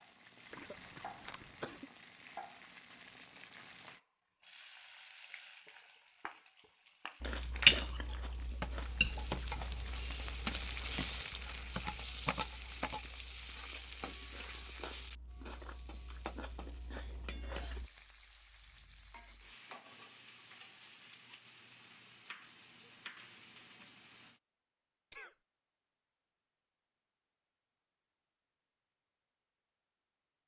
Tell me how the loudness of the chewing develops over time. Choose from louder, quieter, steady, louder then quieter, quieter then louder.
quieter then louder.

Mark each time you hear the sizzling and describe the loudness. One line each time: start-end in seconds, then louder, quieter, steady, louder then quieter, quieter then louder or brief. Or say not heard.
0.0-24.4 louder then quieter.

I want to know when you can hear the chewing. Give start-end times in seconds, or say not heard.
7.2-17.9.